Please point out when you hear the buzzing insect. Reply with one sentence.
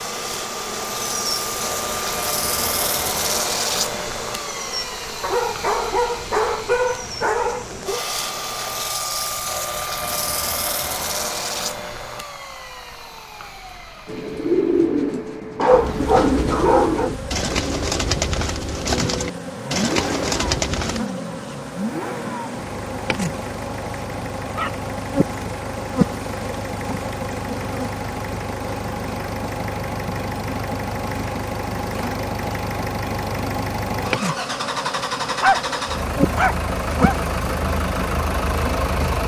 The buzzing insect can be heard from 0.0 to 8.9 s and from 15.9 to 39.2 s.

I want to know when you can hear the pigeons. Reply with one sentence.
The pigeons can be heard from 14.1 to 21.1 s.